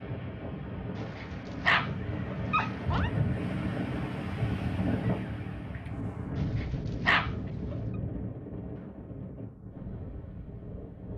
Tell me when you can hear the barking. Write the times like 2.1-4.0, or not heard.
0.9-3.1, 6.3-7.8.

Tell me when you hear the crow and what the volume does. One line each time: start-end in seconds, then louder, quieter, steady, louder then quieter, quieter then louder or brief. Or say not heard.
not heard.